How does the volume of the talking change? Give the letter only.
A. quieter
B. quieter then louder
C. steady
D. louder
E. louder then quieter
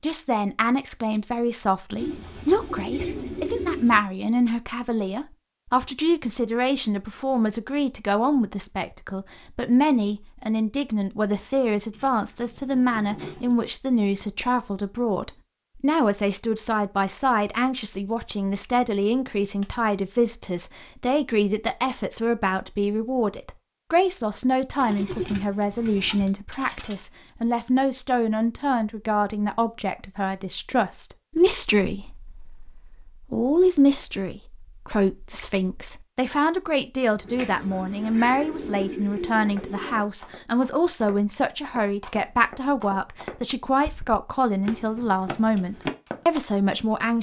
C.